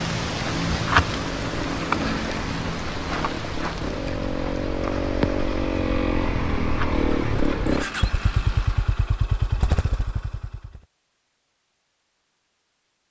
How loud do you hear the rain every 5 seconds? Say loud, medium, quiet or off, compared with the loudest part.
loud, medium, off.